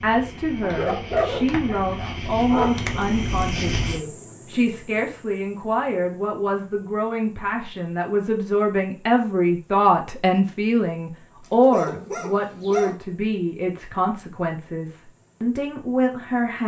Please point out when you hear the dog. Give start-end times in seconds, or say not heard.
0.6-3.0, 11.7-12.9.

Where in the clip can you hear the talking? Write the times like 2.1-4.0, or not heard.
0.0-16.6.